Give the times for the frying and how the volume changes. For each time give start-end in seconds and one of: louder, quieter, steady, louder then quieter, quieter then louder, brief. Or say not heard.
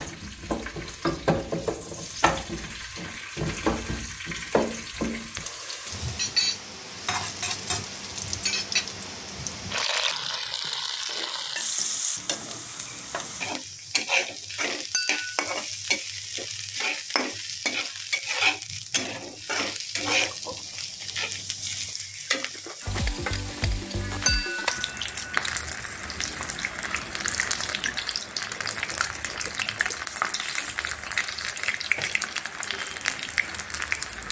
0.0-34.2 steady.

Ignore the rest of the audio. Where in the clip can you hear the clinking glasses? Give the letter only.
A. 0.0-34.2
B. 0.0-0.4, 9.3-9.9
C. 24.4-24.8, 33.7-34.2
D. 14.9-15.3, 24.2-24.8
D.